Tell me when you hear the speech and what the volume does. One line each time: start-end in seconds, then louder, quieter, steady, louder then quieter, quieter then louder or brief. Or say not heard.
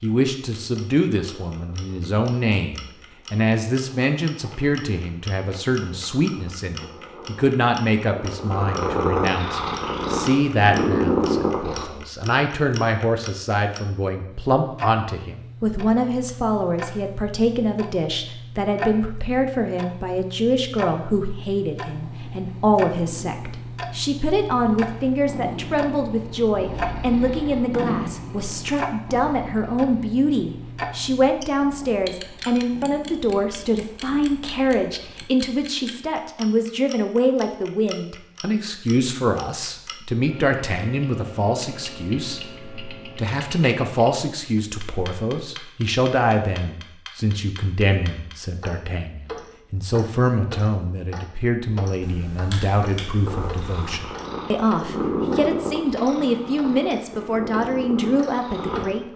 0.0-59.1 steady.